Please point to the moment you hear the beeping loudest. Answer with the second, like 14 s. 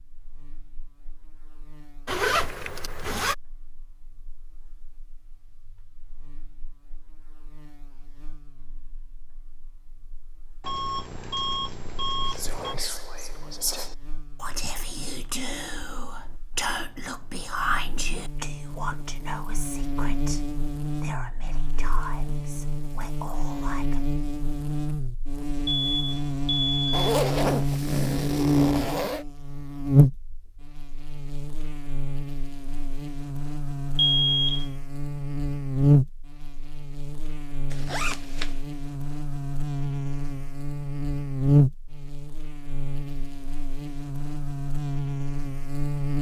34 s.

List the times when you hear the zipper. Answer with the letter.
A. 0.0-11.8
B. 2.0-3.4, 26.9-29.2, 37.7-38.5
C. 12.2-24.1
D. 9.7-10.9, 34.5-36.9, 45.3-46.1
B.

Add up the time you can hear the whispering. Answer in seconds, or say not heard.
12 s.